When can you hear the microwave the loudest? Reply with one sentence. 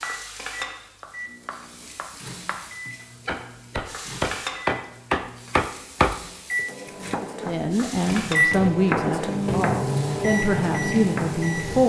The loudest moment of the microwave is at 9 seconds.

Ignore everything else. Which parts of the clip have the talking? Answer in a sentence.
The talking can be heard from 7.5 to 11.8 s.